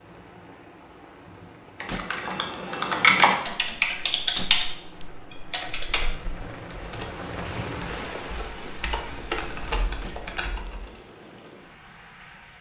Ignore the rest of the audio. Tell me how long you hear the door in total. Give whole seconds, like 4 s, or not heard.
2 s.